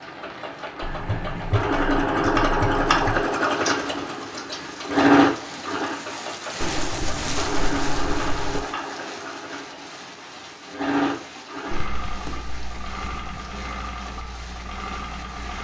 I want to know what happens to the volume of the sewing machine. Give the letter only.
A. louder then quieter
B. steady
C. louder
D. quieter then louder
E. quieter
E.